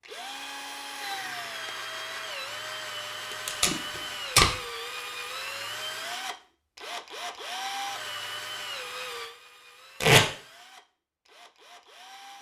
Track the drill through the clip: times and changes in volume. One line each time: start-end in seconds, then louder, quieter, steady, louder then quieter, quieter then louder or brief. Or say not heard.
0.0-12.3 quieter.